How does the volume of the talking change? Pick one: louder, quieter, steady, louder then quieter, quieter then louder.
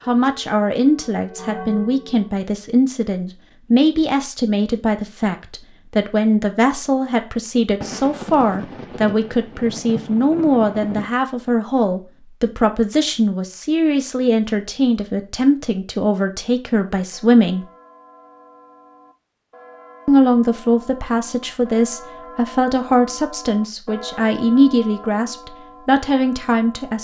steady.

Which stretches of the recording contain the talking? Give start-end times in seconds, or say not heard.
0.1-17.6, 20.1-27.0.